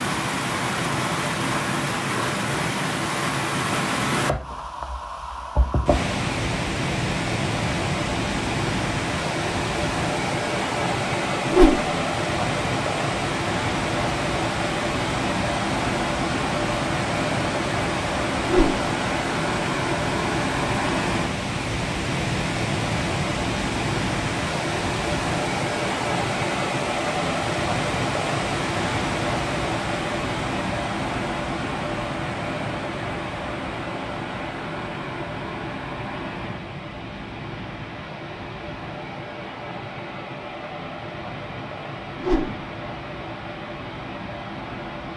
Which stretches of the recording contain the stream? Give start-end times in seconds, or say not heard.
0.0-45.1.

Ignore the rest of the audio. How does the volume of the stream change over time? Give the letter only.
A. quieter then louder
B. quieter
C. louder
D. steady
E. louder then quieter
B.